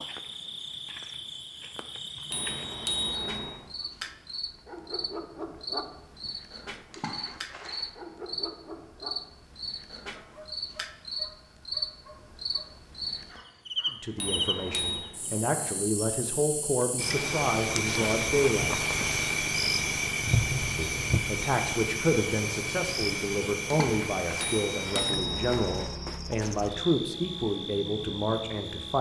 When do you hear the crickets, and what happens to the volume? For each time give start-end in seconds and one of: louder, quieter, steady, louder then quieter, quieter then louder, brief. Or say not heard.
0.0-28.9 louder then quieter.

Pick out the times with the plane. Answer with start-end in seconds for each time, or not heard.
not heard.